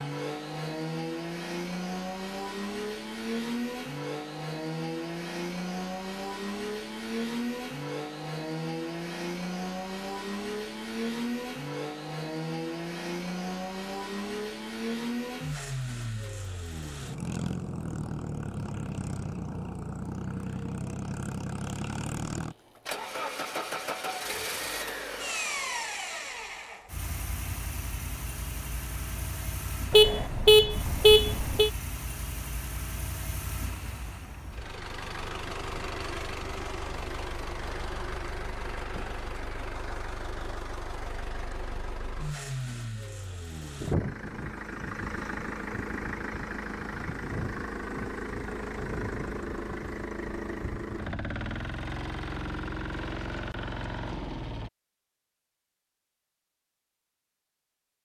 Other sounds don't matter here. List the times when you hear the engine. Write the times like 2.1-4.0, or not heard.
0.0-54.7.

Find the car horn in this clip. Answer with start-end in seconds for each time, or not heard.
29.9-31.7.